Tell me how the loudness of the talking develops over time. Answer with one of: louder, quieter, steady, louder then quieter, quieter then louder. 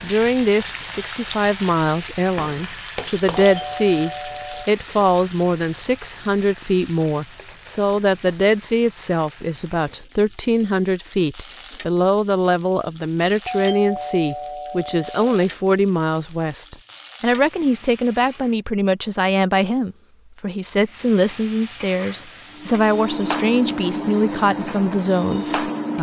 steady.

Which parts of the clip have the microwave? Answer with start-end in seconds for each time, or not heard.
22.5-25.9.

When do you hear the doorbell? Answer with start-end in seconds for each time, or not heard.
3.4-4.7, 13.4-15.3.